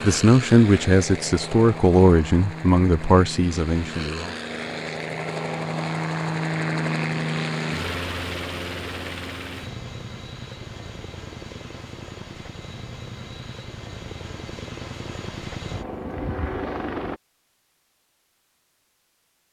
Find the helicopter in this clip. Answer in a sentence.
You can hear the helicopter from 0.0 to 17.2 s.